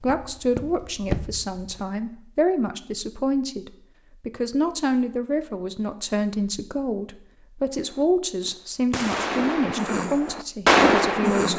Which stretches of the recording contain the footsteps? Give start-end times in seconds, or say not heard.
0.0-1.9.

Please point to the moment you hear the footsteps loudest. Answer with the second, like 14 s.
1 s.